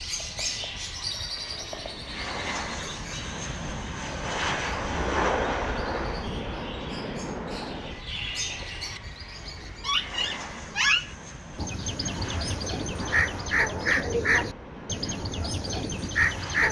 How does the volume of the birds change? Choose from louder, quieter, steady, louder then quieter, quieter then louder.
quieter then louder.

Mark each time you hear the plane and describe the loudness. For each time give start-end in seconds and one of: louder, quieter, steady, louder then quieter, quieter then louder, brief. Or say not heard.
0.0-16.6 louder then quieter.